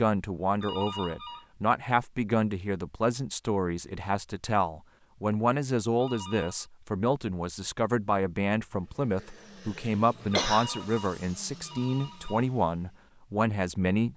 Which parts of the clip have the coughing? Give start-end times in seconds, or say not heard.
9.2-10.7.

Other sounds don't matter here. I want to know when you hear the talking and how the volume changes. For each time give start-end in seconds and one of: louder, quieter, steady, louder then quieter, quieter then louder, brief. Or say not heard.
0.0-14.1 steady.